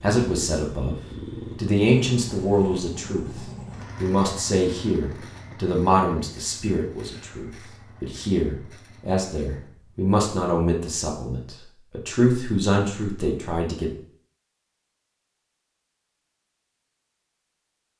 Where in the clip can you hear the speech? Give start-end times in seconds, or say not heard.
0.0-0.9, 1.6-13.9.